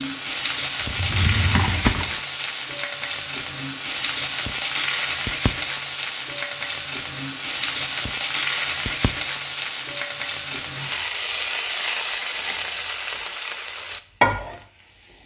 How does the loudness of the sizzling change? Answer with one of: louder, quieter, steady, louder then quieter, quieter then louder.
steady.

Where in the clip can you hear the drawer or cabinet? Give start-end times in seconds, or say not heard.
0.8-2.1.